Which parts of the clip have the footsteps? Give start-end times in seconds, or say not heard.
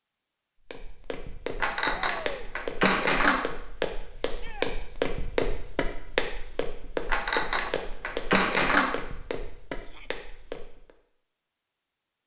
0.6-10.9.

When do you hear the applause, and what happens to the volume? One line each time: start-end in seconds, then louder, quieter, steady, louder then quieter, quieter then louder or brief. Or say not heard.
not heard.